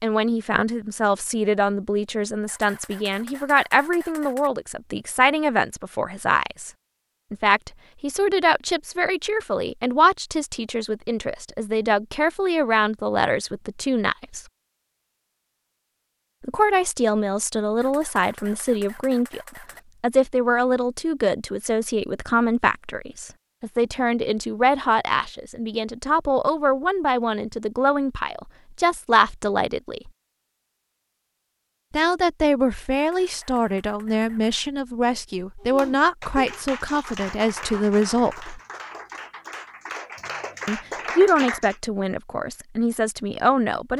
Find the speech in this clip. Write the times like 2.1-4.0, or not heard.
0.0-6.7, 7.3-14.4, 16.4-30.1, 31.9-38.6, 40.6-43.9.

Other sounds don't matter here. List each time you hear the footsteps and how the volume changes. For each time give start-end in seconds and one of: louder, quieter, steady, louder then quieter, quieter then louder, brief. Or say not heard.
not heard.